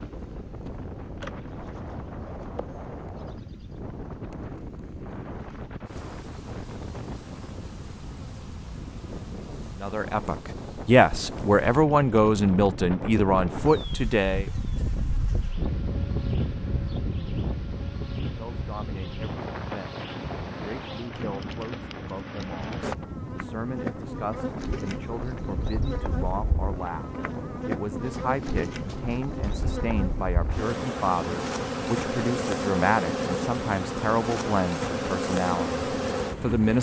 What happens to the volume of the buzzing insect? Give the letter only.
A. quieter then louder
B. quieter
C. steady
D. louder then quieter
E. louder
E.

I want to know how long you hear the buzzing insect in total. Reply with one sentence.
The buzzing insect can be heard for 37 seconds in total.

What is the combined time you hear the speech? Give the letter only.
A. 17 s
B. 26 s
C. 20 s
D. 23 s
D.